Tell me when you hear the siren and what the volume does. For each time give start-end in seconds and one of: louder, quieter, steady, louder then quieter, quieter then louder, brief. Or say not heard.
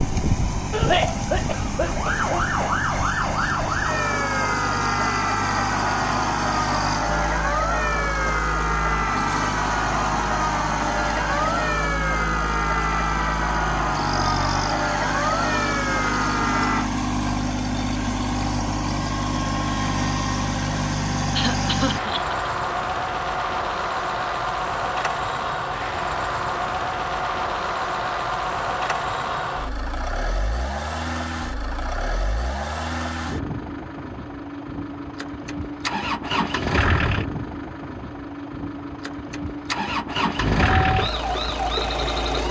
0.0-16.9 steady
40.4-42.4 brief.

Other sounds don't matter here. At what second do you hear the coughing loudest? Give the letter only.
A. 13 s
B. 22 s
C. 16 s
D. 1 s
D.